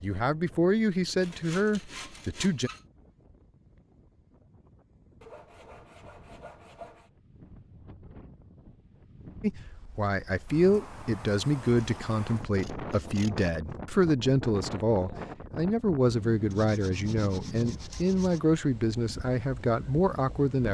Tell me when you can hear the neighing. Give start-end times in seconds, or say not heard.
not heard.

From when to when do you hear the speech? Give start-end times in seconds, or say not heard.
0.0-2.7, 9.4-20.6.